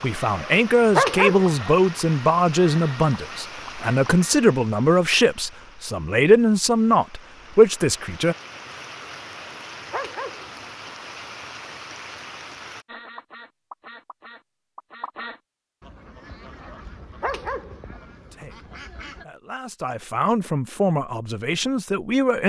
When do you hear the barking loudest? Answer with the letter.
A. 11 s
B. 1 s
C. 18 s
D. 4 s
B.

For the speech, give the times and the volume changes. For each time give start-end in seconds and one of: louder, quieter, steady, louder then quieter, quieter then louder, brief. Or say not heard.
0.0-8.3 steady
18.2-22.4 louder.